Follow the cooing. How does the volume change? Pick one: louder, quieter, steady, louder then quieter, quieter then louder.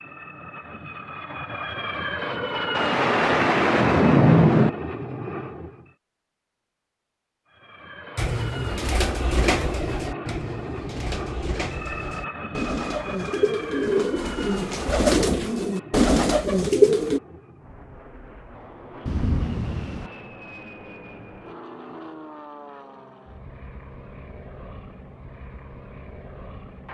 quieter then louder.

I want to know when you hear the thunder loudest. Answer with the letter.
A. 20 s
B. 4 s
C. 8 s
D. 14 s
B.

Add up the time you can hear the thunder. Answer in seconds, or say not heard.
3 s.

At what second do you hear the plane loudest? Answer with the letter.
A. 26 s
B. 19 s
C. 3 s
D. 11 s
C.